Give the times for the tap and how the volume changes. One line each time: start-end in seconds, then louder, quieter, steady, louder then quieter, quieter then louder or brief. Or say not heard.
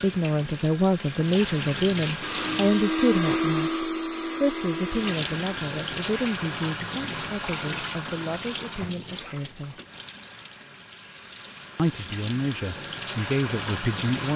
0.0-2.9 brief
4.8-14.3 quieter then louder.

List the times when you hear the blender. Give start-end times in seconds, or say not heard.
2.2-5.2.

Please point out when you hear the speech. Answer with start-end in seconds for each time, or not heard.
0.0-9.8, 11.8-14.3.